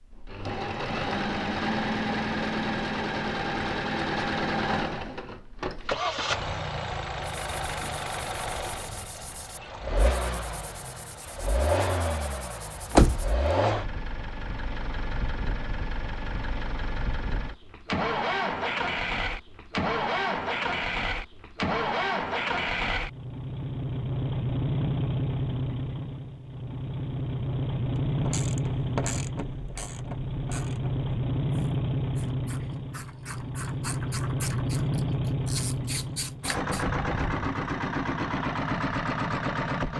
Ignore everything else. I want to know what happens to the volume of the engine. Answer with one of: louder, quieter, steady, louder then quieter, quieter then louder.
steady.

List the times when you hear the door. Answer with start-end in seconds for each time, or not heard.
12.9-13.4.